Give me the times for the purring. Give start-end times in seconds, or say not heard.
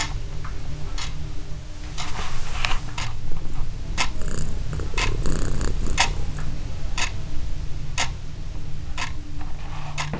3.1-6.5.